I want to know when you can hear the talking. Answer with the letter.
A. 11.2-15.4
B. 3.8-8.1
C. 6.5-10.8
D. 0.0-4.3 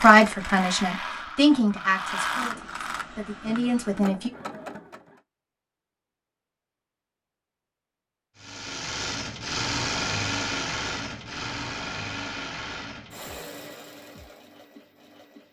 D.